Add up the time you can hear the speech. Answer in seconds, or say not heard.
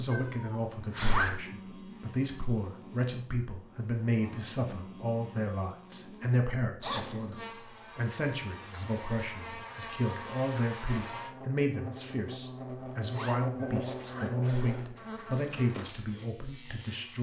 17 s.